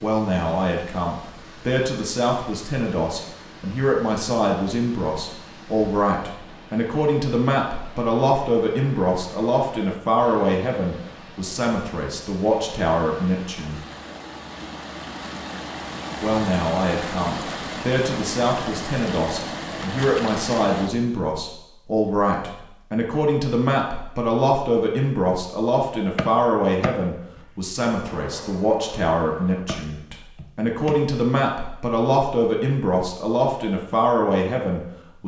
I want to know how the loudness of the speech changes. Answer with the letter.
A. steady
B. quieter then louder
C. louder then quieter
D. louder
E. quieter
A.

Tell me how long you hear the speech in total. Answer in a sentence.
The speech can be heard for 33 seconds in total.